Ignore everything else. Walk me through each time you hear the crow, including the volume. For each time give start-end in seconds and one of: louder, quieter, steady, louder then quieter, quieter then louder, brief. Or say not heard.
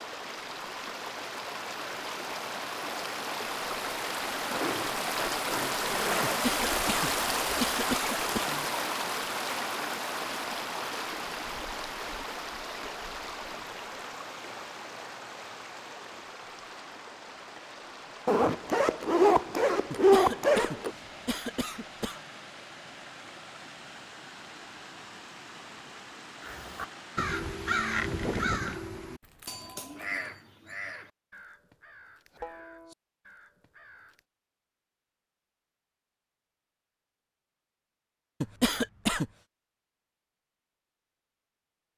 26.4-34.2 quieter then louder.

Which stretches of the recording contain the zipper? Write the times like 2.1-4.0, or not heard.
4.5-6.5, 18.2-20.9, 29.2-30.2.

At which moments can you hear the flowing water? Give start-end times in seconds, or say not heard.
0.0-28.4.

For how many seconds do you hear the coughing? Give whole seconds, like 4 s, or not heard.
6 s.